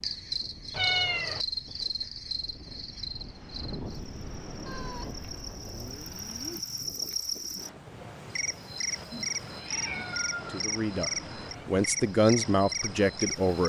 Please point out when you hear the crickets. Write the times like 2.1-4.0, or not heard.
0.0-13.6.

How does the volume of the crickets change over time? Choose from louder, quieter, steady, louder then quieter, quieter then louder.
quieter then louder.